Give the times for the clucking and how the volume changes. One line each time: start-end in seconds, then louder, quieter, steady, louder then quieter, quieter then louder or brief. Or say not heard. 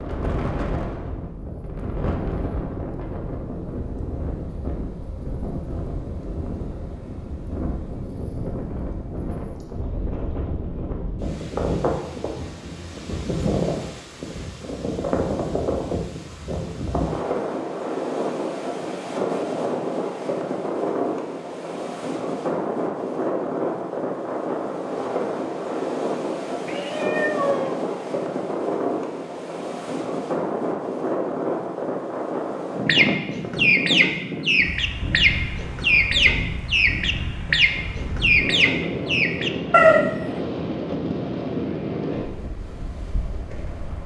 32.9-40.2 steady.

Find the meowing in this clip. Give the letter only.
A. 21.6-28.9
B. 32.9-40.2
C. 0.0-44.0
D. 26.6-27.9
D.